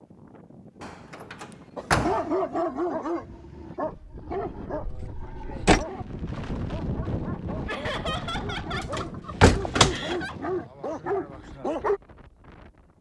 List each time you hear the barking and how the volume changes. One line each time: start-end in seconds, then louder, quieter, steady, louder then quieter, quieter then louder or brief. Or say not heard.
1.8-12.0 quieter then louder.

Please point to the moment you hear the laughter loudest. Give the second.
8 s.